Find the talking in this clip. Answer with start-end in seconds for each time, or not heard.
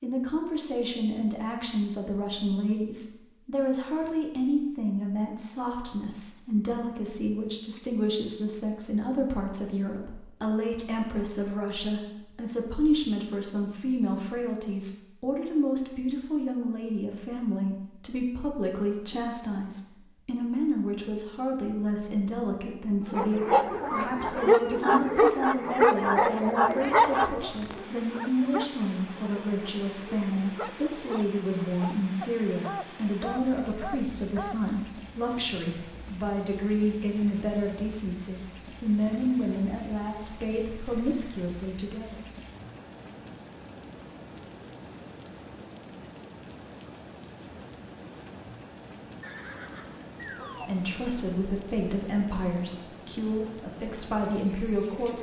0.0-42.2, 50.6-55.1.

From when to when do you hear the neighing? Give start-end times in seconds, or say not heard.
49.2-50.7.